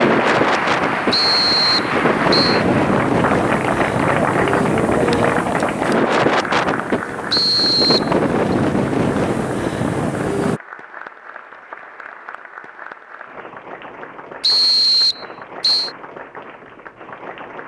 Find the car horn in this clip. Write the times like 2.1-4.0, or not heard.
not heard.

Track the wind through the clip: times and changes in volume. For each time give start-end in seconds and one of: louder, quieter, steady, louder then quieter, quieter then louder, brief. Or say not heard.
0.0-10.6 steady.